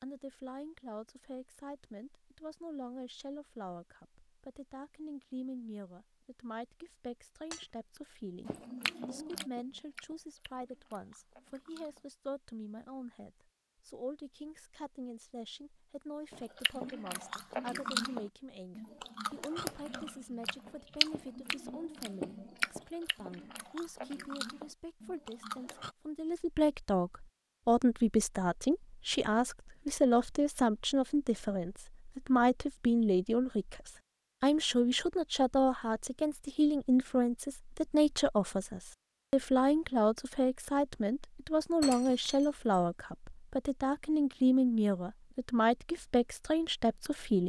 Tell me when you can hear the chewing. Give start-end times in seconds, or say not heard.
8.4-12.1, 16.3-25.9.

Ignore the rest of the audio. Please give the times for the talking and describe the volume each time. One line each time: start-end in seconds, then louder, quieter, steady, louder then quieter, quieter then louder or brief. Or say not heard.
0.0-47.4 louder.